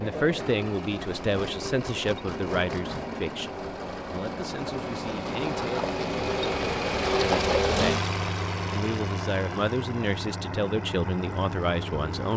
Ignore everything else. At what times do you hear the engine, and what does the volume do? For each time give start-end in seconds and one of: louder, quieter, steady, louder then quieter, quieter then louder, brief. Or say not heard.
0.0-12.3 louder then quieter.